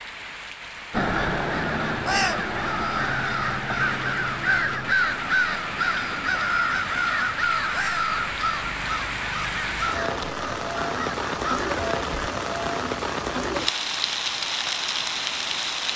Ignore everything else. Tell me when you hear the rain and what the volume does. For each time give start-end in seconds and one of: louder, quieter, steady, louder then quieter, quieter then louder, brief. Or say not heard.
0.0-15.9 louder.